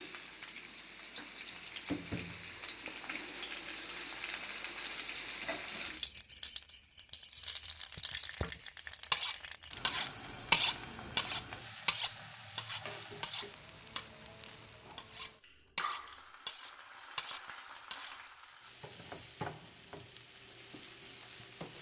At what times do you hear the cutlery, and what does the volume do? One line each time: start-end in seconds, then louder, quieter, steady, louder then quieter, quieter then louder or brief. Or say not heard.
9.1-18.1 quieter.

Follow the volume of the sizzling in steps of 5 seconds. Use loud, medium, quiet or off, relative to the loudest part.
loud, loud, medium, medium, medium.